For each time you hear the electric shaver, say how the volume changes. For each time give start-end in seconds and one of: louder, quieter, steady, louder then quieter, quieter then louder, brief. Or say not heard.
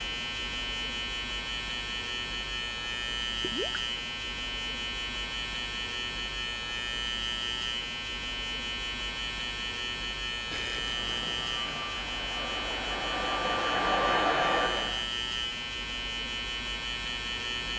0.0-17.7 steady.